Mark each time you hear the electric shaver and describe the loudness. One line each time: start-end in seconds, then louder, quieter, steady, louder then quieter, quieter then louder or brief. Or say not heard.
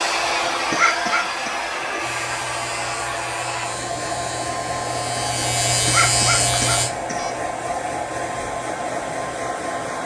1.9-6.9 louder.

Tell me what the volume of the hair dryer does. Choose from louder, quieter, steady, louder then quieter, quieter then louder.
steady.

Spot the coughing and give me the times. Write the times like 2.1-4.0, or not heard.
0.7-1.6, 5.8-7.3.